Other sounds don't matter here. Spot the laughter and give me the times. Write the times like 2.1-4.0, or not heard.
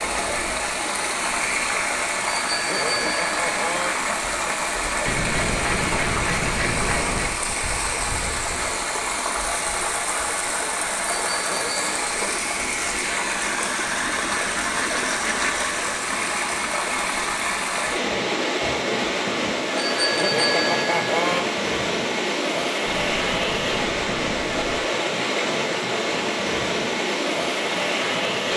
not heard.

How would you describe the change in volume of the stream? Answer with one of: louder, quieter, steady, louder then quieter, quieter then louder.
steady.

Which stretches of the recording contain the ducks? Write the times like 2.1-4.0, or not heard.
5.0-7.3, 13.8-15.6, 22.9-24.9.